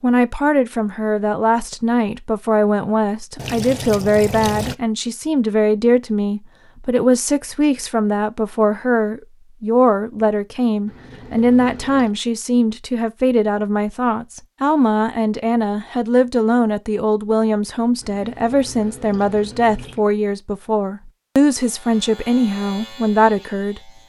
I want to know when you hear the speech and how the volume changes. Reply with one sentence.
You can hear the speech from 0.0 to 23.9 s, at a steady volume.